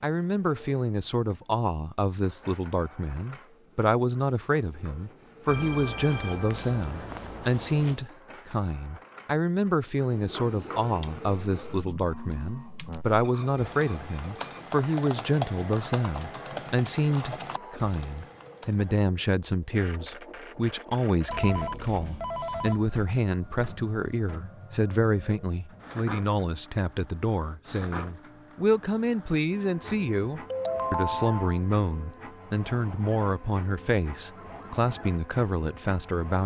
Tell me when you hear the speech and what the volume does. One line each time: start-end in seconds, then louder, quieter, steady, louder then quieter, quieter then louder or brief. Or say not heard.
0.0-36.4 steady.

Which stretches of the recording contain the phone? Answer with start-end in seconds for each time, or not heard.
5.5-8.1, 21.2-22.8, 30.5-31.6.